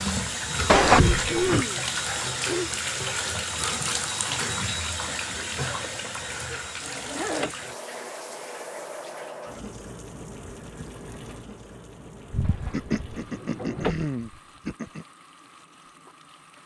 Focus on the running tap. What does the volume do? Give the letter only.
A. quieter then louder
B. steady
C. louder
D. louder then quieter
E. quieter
E.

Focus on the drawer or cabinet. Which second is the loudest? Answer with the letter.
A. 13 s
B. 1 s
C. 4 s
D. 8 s
B.